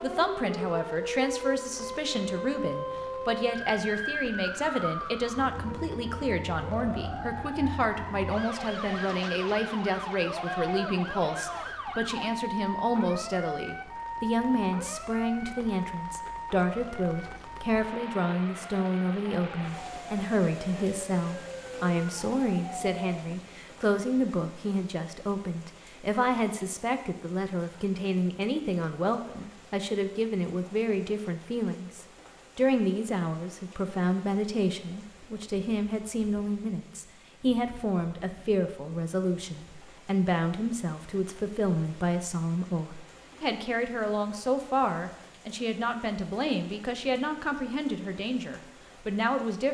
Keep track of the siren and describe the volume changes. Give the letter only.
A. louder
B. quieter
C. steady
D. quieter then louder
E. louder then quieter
B.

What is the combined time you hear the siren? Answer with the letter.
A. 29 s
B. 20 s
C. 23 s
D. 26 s
C.